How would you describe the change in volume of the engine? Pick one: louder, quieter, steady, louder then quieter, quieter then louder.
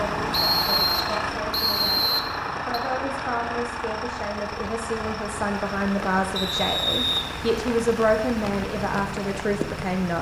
quieter.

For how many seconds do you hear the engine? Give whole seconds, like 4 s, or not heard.
10 s.